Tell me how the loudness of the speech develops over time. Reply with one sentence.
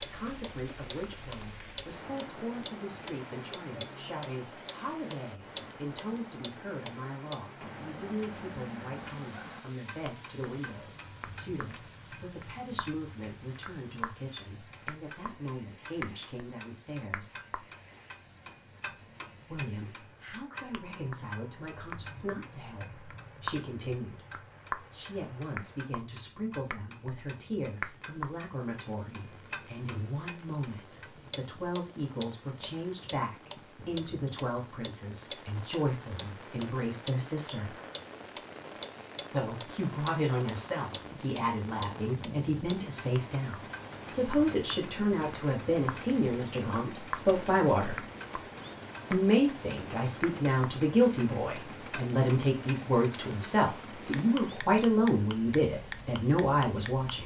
The loudness of the speech goes up.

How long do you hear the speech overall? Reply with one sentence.
You can hear the speech for 52 seconds altogether.